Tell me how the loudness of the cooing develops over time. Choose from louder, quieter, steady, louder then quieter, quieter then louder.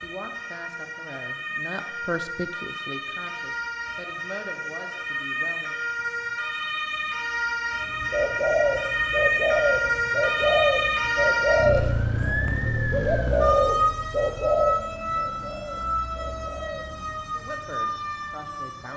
quieter.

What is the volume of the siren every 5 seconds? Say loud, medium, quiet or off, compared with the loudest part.
medium, loud, loud, medium.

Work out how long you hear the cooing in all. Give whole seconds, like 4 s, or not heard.
9 s.